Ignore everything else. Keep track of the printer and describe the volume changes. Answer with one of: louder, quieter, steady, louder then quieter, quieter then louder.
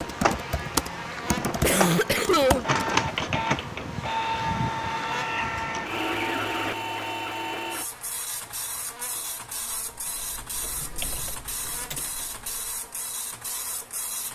quieter.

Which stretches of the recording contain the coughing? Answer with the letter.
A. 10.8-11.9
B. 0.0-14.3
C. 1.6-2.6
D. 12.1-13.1
C.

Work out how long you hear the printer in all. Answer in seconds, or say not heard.
14 s.